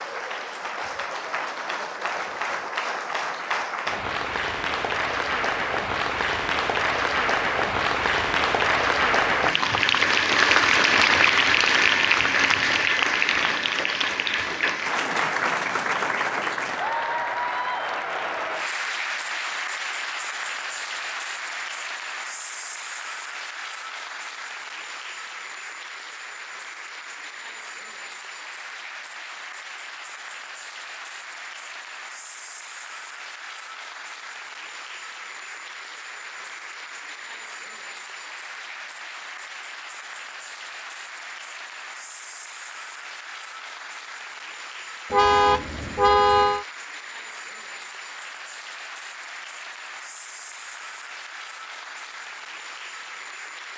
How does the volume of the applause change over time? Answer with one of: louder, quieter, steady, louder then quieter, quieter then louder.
quieter.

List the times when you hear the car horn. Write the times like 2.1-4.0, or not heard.
45.1-46.6.